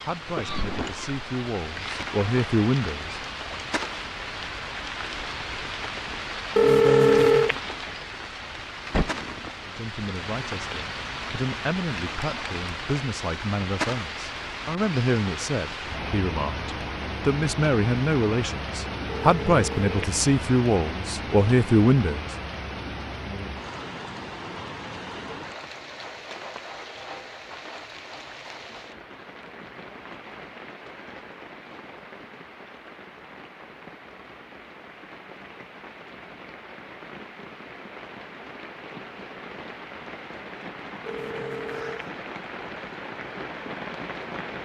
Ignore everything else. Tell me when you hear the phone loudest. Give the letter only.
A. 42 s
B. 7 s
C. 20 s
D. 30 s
B.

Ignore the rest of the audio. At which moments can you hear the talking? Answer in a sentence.
You can hear the talking from 0.1 to 3.2 s and from 9.7 to 22.3 s.